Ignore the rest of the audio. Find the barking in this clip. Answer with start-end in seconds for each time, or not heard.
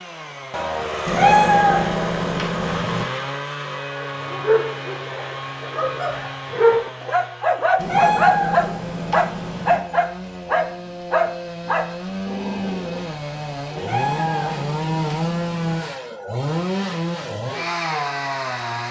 4.0-13.1.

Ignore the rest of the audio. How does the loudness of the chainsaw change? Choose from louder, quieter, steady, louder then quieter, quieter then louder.
quieter then louder.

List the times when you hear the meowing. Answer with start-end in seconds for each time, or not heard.
1.1-3.0, 7.8-9.8, 13.8-15.8.